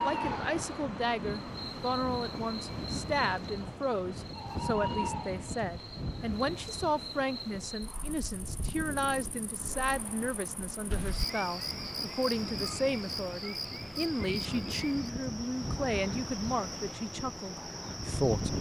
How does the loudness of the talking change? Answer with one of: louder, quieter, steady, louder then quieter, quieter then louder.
steady.